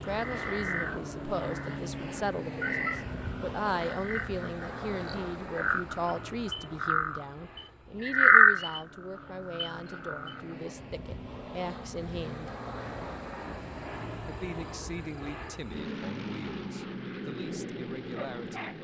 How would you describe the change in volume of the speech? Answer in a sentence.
The loudness of the speech goes down.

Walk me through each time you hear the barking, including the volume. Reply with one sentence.
The barking can't be heard in this clip.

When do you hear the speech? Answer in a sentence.
You can hear the speech from 0.0 to 12.5 s and from 14.2 to 18.7 s.